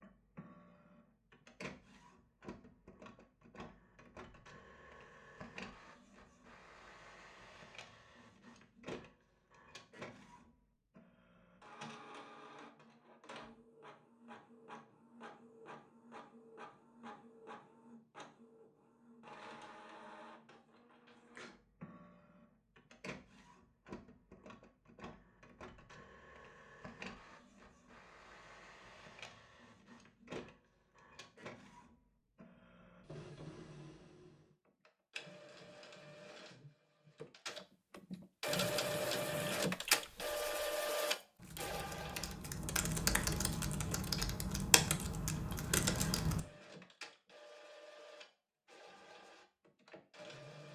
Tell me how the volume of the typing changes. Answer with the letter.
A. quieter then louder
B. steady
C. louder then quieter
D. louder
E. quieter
D.